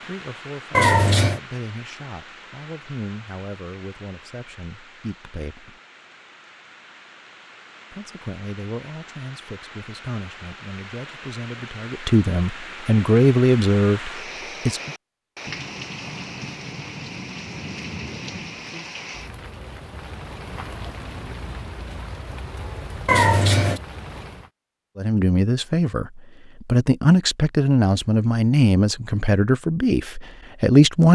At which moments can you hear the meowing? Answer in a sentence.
You can hear the meowing from 0.7 to 1.4 s and from 23.1 to 23.8 s.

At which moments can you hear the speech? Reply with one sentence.
You can hear the speech from 0.1 to 5.8 s, from 7.9 to 14.9 s and from 24.9 to 31.1 s.